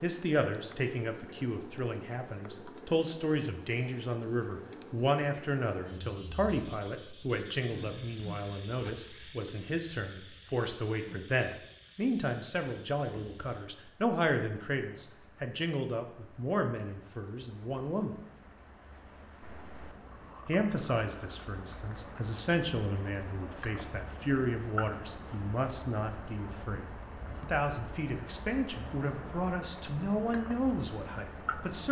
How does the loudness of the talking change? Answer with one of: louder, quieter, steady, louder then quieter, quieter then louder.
steady.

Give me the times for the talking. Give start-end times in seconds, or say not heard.
0.0-18.1, 20.4-31.8.